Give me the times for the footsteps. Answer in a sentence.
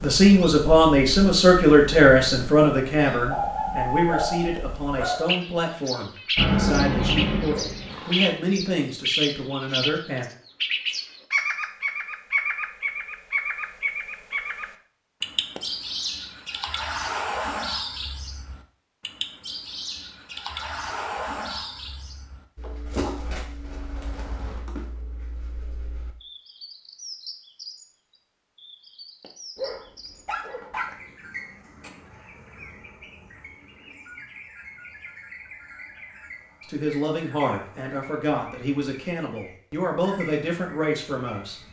The footsteps can't be heard in this clip.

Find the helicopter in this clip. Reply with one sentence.
You can hear the helicopter from 6.3 to 8.3 s.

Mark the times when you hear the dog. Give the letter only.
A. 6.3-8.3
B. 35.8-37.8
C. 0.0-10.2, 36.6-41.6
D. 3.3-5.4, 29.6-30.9
D.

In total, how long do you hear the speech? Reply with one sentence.
You can hear the speech for 15 seconds altogether.